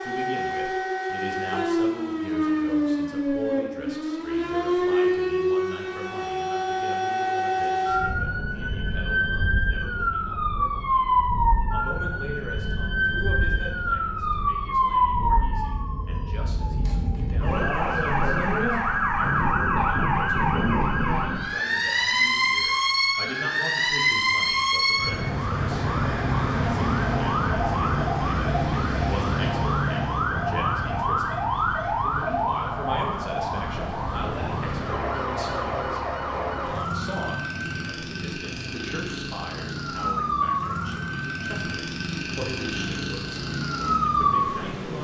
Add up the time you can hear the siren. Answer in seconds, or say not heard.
45 s.